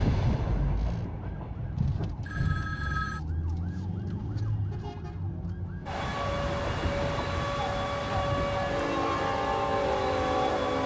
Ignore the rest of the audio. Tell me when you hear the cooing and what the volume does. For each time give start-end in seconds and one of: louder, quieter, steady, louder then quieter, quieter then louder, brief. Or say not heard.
not heard.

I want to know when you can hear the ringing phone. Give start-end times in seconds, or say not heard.
2.2-3.2.